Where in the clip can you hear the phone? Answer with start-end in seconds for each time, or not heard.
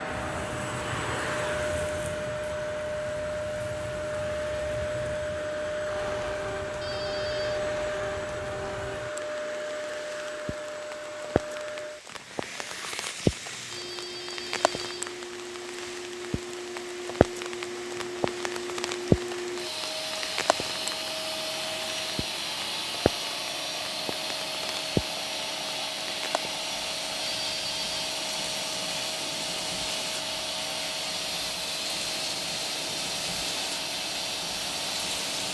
6.8-7.7, 13.7-15.2, 27.2-28.0.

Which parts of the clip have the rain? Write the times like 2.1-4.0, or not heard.
0.0-35.4.